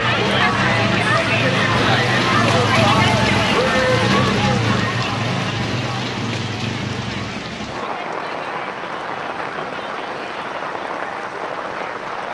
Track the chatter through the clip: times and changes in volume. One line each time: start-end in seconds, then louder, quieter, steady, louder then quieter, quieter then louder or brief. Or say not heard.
0.0-12.3 quieter.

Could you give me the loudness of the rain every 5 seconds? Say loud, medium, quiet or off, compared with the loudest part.
loud, medium, medium.